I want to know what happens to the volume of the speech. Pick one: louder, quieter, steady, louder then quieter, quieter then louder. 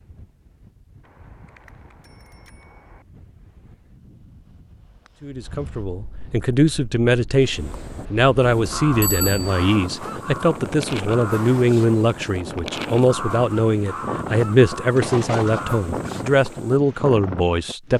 steady.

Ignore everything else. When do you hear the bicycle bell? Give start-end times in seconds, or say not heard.
1.0-3.0, 9.0-9.7, 14.9-15.7.